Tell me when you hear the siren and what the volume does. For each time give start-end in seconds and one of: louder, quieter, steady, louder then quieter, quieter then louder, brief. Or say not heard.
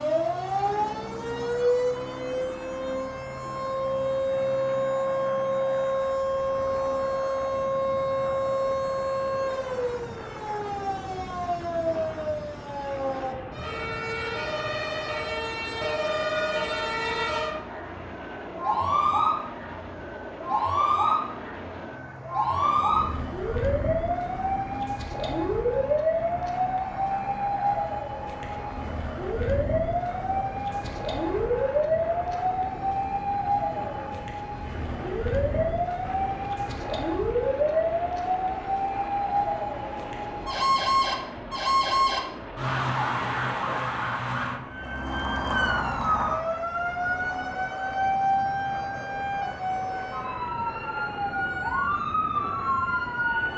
0.0-53.5 steady.